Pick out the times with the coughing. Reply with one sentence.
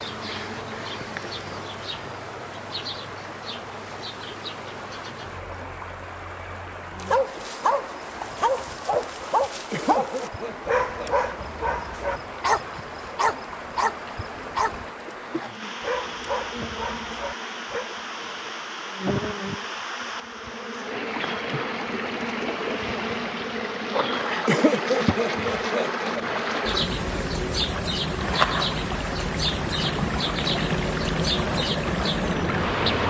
The coughing can be heard from 9.7 to 11.5 s and from 24.4 to 26.2 s.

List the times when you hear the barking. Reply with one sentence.
The barking can be heard from 7.0 to 17.9 s.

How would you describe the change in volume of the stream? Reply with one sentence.
The volume of the stream goes up.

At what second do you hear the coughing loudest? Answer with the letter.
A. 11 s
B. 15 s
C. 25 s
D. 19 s
C.